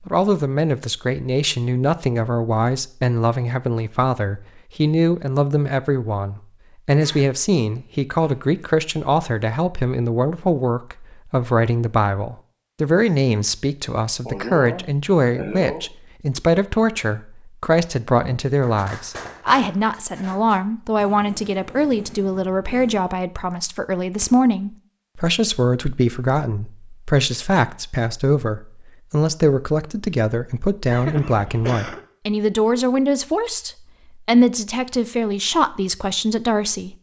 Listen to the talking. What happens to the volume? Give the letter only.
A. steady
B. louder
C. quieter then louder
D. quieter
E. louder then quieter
A.